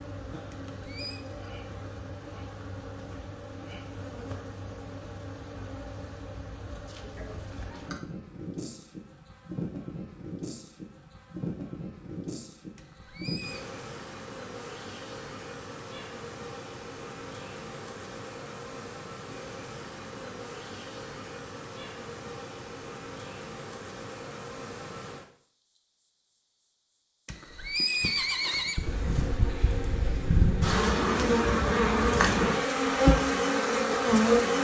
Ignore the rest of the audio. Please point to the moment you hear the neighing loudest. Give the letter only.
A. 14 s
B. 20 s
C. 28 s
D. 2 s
C.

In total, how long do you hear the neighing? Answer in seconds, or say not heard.
3 s.